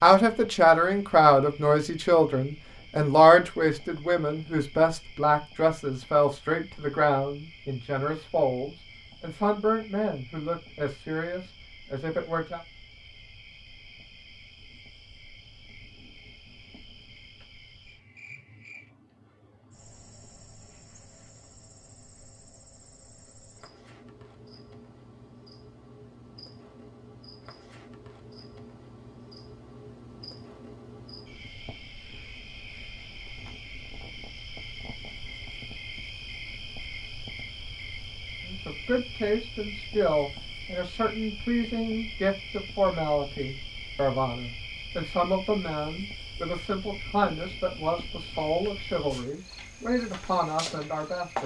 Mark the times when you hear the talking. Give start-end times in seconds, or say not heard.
0.0-12.6, 38.4-51.4.